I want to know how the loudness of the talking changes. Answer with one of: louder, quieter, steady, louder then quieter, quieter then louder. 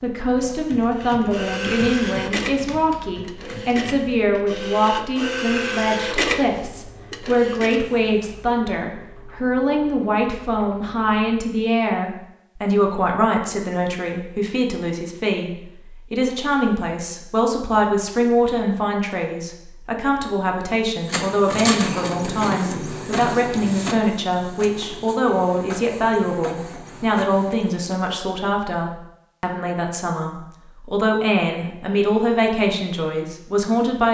steady.